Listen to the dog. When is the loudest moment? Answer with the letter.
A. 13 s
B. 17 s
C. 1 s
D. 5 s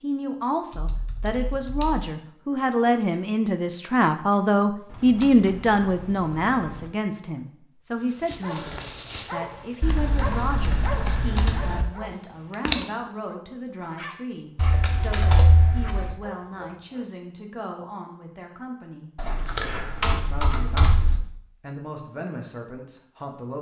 A.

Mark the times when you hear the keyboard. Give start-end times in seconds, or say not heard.
0.7-2.1, 4.8-6.9, 9.8-11.8, 14.6-16.1, 19.1-21.2.